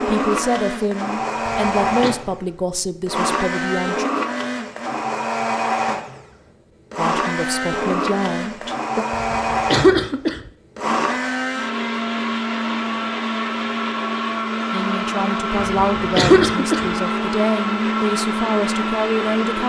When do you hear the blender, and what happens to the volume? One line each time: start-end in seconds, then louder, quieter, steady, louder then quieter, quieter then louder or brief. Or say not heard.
0.0-19.6 steady.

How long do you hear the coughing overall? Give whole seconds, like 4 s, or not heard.
3 s.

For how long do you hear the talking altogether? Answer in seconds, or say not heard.
11 s.